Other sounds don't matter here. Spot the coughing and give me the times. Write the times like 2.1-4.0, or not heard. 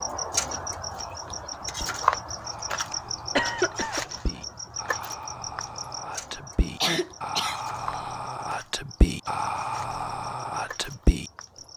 2.9-4.0, 6.8-8.0.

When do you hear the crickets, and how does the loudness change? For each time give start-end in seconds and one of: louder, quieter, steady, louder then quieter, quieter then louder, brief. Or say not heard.
0.0-11.7 quieter.